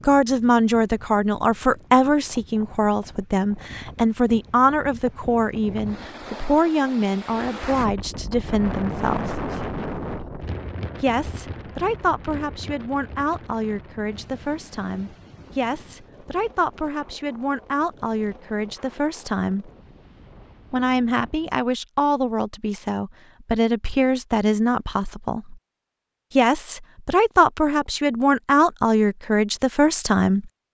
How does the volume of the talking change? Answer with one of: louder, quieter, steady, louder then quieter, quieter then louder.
quieter then louder.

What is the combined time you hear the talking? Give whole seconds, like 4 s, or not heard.
27 s.